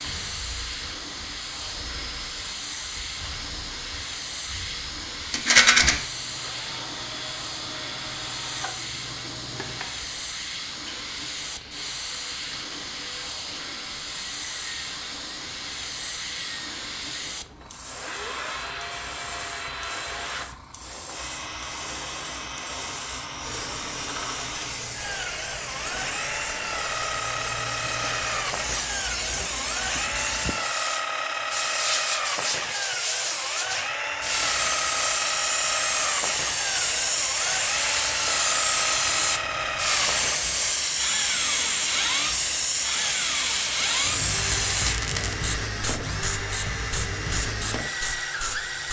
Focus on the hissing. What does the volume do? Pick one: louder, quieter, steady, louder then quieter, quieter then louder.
louder.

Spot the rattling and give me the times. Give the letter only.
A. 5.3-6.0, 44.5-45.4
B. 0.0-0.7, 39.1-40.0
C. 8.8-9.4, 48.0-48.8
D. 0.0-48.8
A.